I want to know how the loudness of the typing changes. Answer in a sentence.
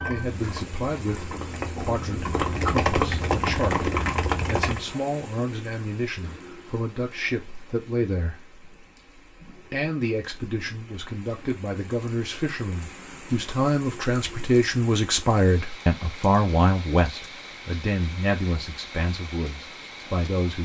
The volume of the typing goes up.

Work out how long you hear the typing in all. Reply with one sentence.
The typing can be heard for 5 seconds in total.